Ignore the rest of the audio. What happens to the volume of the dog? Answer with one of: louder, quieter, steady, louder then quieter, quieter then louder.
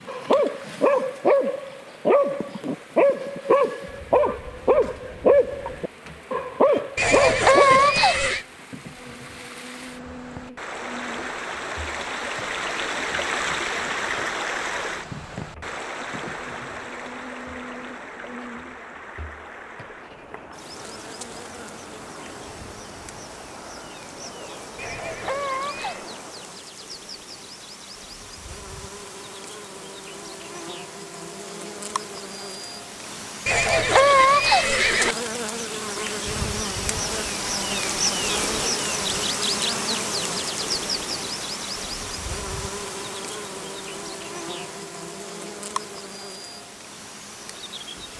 steady.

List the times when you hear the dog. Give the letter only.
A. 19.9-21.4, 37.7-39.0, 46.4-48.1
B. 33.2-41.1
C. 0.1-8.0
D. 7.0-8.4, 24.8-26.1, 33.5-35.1
C.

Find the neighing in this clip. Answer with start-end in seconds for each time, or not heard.
7.0-8.4, 24.8-26.1, 33.5-35.1.